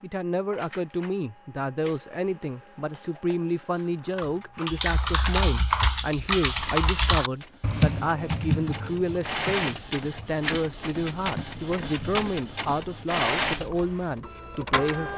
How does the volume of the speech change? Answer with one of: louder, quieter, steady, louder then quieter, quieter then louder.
steady.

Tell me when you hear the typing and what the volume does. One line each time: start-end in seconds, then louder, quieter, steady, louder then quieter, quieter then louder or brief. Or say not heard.
4.2-14.2 quieter.